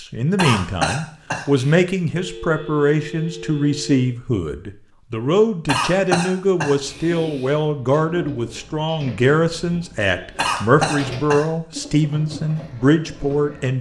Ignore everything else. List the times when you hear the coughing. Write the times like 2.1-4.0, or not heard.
0.3-1.7, 5.7-7.6, 10.3-11.4.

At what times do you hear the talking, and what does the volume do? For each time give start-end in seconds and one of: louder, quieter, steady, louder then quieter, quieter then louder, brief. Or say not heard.
0.0-13.7 steady.